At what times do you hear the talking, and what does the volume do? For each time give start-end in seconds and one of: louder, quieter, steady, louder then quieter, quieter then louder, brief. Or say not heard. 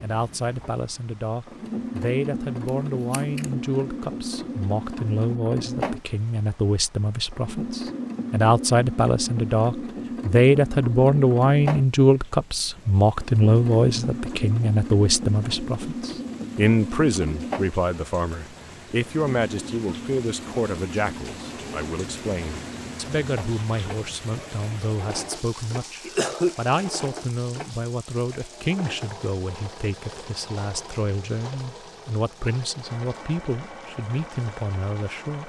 0.0-35.4 louder then quieter.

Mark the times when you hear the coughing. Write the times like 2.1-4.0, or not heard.
26.1-26.9.